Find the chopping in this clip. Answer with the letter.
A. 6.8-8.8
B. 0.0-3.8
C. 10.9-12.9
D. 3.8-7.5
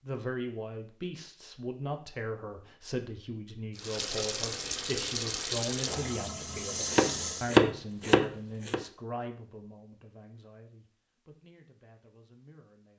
A.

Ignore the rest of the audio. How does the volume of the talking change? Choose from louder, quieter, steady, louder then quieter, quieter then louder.
quieter.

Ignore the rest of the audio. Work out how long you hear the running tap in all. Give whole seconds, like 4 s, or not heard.
4 s.